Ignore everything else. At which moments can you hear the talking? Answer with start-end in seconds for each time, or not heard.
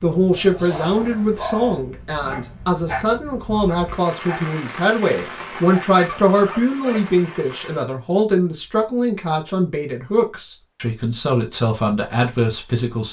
0.0-13.0.